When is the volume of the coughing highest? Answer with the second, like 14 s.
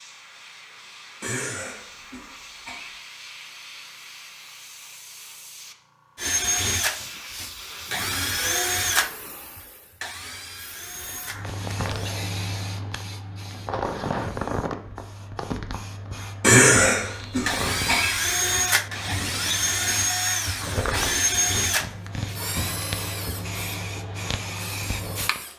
17 s.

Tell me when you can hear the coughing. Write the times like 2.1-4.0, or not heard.
1.2-3.0, 16.4-18.6.